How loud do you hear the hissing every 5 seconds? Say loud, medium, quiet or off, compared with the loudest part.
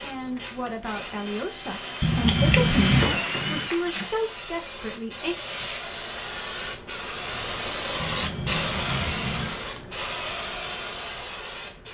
medium, loud, loud.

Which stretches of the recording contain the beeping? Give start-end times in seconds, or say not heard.
2.0-3.1, 8.0-9.6.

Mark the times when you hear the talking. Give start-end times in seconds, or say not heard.
0.0-5.4.